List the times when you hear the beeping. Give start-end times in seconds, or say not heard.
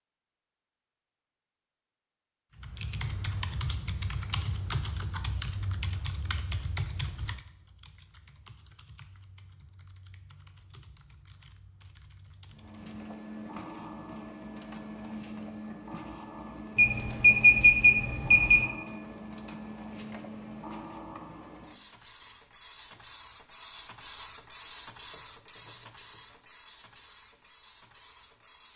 16.8-18.6.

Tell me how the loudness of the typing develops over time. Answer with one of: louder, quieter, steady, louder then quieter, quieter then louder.
quieter.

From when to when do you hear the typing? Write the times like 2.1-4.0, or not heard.
2.5-13.0.